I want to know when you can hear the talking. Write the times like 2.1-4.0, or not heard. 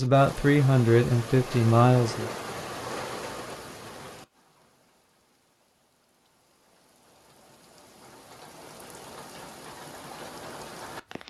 0.0-2.3.